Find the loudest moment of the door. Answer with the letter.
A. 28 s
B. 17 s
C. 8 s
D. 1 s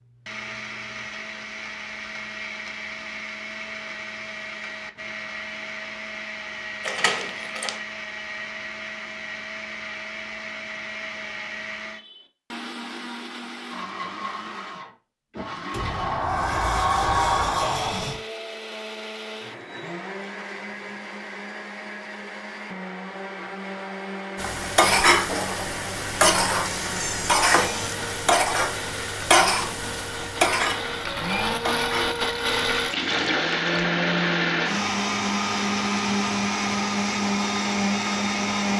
B.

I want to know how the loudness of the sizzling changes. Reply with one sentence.
The loudness of the sizzling goes down.